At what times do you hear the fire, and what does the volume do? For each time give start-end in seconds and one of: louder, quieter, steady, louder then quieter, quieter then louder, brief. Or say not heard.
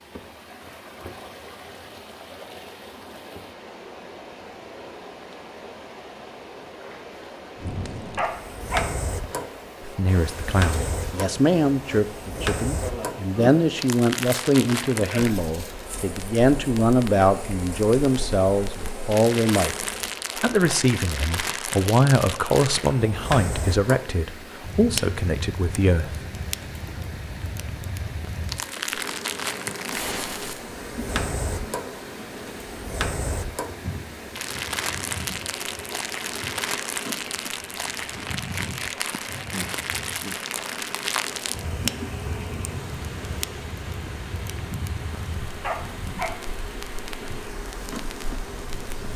7.5-49.1 steady.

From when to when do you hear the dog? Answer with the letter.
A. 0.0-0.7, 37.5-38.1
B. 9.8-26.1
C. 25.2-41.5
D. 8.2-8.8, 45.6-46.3
D.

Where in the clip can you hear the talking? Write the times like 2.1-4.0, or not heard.
9.8-26.1.